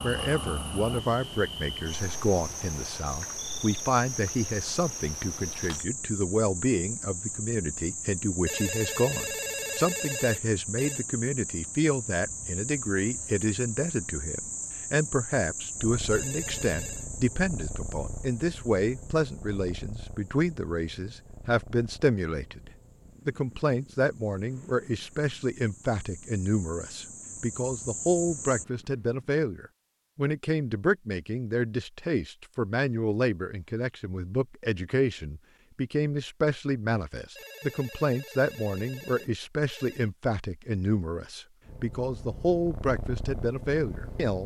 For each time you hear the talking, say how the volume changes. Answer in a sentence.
You can hear the talking from 0.0 to 44.4 s, at a steady volume.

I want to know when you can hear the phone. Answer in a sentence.
You can hear the phone from 8.4 to 11.1 s, from 16.1 to 17.1 s and from 37.4 to 40.1 s.